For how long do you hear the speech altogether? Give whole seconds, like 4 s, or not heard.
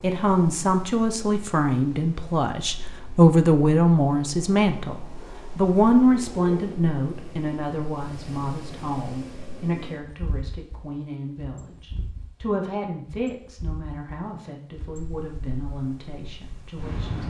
17 s.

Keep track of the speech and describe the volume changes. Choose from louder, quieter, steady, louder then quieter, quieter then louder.
quieter.